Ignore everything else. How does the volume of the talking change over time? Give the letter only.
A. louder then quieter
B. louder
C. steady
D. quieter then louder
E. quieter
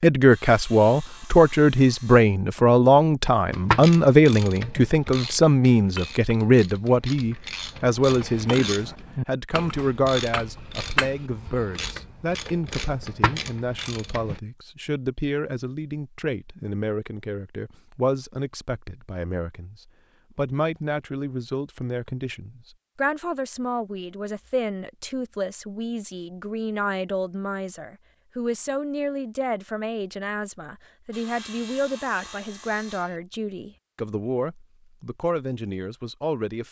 E.